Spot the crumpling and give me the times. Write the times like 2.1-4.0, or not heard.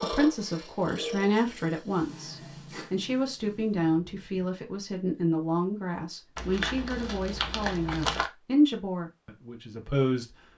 6.3-8.3.